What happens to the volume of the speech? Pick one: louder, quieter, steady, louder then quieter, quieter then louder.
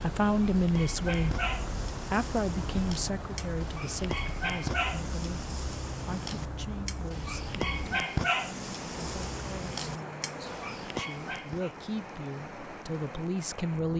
quieter then louder.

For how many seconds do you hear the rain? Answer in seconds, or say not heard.
14 s.